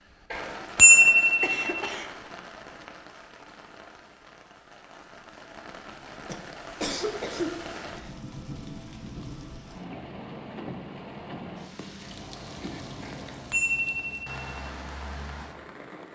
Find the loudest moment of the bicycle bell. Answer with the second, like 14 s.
1 s.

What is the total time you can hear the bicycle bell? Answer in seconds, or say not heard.
3 s.